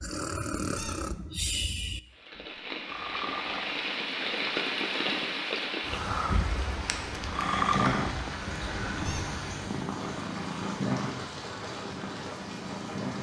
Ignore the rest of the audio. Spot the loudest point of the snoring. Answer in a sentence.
The volume of the snoring peaks at 8 seconds.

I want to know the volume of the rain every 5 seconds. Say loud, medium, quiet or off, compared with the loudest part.
loud, loud, medium.